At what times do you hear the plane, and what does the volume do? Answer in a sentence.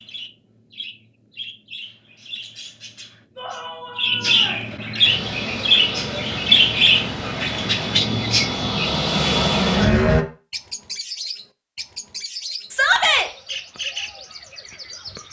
You can hear the plane from 5.0 to 10.2 s, getting louder.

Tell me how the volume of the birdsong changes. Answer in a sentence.
The loudness of the birdsong goes up, then down.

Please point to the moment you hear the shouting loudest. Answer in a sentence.
The loudest moment of the shouting is at 13 seconds.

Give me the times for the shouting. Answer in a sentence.
The shouting can be heard from 3.4 to 4.7 s and from 12.7 to 13.3 s.